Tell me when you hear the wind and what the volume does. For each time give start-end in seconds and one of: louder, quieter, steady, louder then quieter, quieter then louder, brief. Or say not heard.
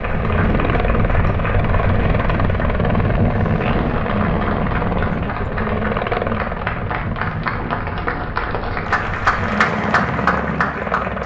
0.0-9.6 quieter.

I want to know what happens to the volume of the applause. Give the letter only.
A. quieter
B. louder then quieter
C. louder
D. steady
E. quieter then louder
C.